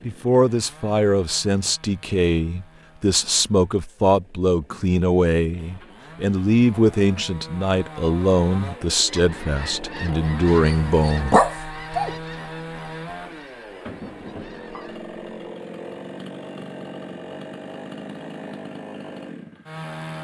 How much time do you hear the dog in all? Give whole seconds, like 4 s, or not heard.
2 s.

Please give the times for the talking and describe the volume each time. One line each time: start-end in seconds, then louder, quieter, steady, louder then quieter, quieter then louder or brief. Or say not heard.
0.1-11.3 steady.